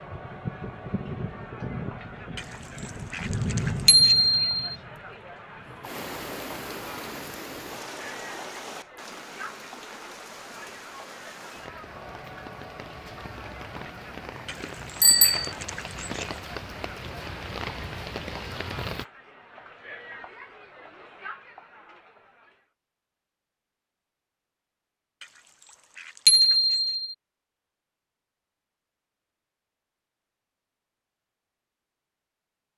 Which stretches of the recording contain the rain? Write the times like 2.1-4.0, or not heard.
0.0-19.1.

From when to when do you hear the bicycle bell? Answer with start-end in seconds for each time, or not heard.
3.9-4.6, 15.0-15.5, 26.2-27.1.